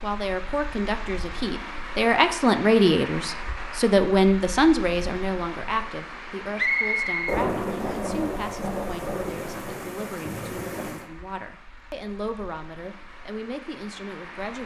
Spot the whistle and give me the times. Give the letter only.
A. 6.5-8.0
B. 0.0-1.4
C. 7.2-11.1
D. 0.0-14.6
A.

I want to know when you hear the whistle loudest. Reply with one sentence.
The volume of the whistle peaks at 7 seconds.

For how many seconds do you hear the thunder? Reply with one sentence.
The thunder can be heard for 4 seconds in total.